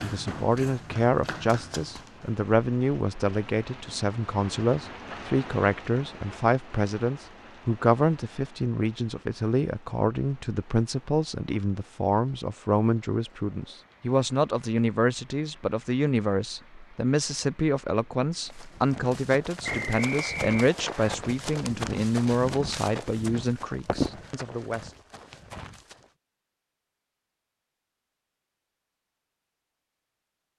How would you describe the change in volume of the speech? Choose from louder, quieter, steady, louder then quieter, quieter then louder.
steady.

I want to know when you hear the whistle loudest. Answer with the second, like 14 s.
20 s.